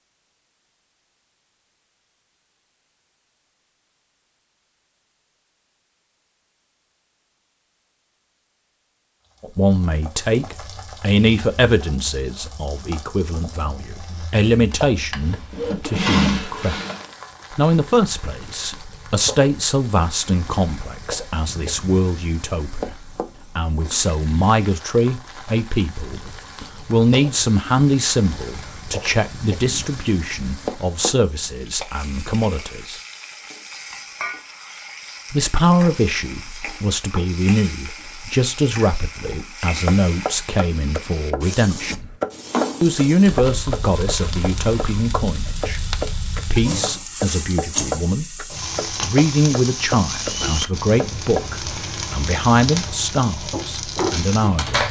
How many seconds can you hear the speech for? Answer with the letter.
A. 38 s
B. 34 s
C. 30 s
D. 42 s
D.